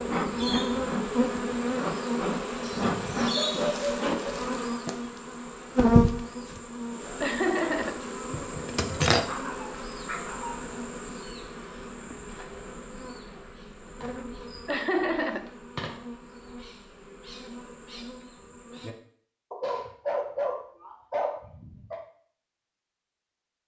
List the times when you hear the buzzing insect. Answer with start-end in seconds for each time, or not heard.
0.0-18.9.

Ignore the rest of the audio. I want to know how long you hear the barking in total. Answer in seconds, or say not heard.
6 s.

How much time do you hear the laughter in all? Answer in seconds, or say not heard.
2 s.